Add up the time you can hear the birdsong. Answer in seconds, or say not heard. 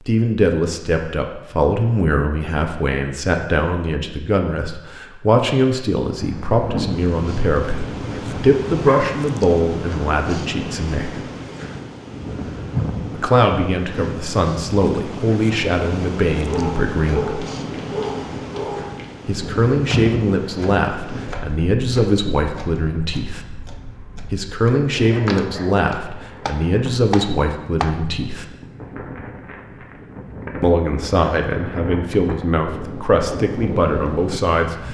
not heard.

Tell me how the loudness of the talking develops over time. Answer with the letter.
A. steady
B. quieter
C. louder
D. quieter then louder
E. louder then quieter
A.